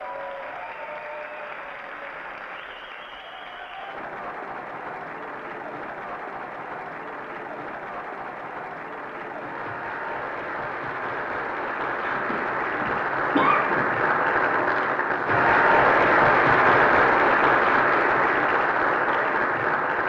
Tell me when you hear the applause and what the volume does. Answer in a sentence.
You can hear the applause from 0.0 to 20.0 s, getting louder.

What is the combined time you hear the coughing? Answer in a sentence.
The coughing can be heard for 2 seconds in total.